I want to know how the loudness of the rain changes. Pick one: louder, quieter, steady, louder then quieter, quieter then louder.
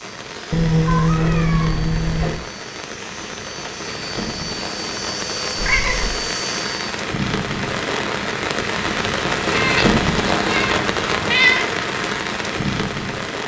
louder.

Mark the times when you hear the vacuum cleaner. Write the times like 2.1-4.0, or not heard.
0.0-7.0.